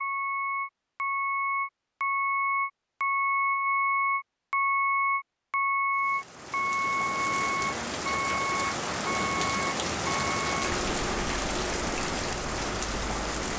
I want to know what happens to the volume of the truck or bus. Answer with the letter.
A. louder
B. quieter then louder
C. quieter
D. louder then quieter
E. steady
C.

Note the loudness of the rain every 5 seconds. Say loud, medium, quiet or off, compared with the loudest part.
off, loud, loud.